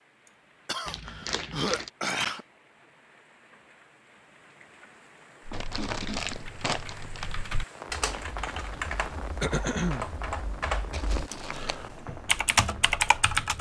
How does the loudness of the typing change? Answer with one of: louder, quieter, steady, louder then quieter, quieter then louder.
louder.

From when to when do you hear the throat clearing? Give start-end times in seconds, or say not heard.
0.7-2.5, 5.5-6.5, 9.4-10.1.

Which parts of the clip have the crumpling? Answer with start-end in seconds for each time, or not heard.
0.8-1.9, 5.5-7.3, 10.9-11.8.